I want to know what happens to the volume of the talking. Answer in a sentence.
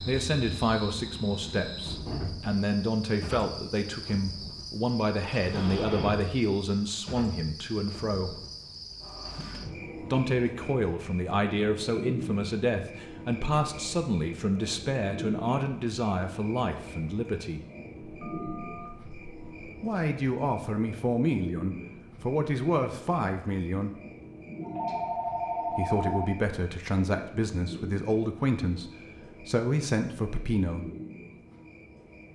The loudness of the talking stays about the same.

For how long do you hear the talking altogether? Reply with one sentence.
The talking can be heard for 25 seconds in total.